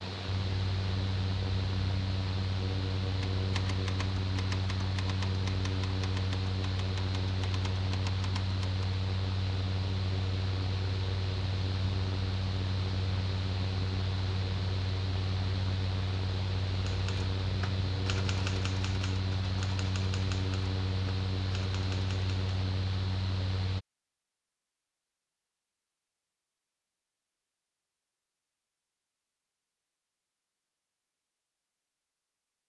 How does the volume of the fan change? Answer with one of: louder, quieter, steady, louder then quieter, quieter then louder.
steady.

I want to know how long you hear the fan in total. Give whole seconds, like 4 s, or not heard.
24 s.